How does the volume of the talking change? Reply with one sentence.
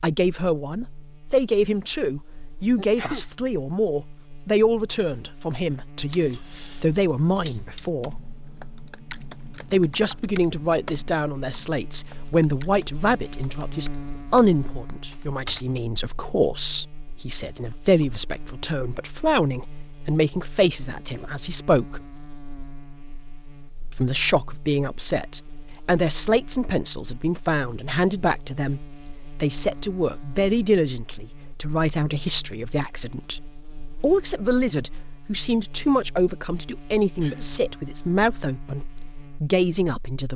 The volume of the talking stays about the same.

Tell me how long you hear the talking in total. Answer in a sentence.
You can hear the talking for 37 seconds altogether.